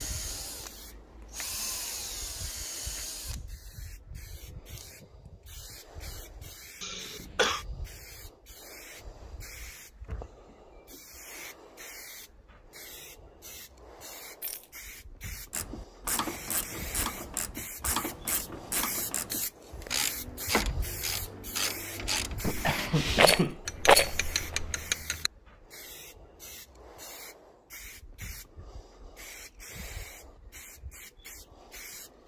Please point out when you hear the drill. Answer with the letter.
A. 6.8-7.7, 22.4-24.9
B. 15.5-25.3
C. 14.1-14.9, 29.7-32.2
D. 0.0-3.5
D.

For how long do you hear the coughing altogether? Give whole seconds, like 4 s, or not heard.
3 s.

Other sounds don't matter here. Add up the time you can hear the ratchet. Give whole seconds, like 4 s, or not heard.
10 s.